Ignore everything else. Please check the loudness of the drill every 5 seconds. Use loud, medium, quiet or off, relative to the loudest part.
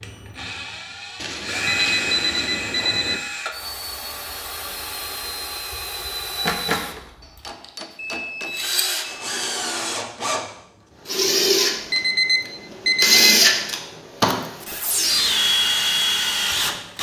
medium, medium, loud, loud.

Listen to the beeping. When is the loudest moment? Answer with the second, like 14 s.
13 s.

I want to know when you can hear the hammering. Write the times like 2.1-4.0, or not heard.
7.2-8.8.